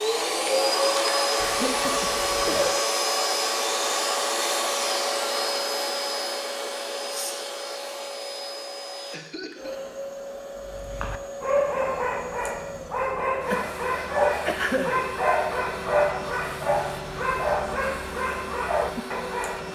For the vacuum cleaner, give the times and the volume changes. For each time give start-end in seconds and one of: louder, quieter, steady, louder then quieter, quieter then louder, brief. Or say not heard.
0.0-19.7 quieter.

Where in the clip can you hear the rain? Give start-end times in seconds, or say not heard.
not heard.